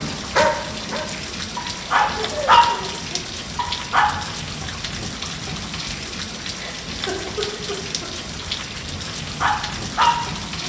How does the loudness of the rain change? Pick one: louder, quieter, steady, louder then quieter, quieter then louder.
steady.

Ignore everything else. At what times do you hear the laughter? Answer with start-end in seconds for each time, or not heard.
1.9-3.0, 6.5-8.1.